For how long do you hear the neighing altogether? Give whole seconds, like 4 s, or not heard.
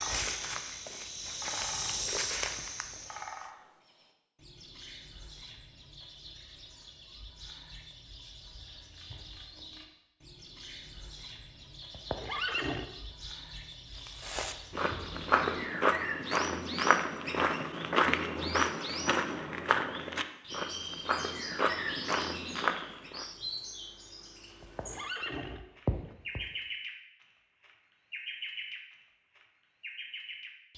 3 s.